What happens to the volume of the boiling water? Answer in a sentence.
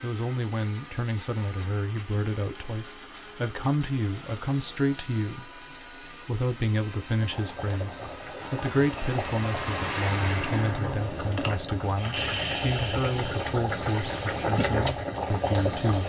The loudness of the boiling water goes up.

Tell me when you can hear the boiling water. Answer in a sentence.
You can hear the boiling water from 7.2 to 16.0 s.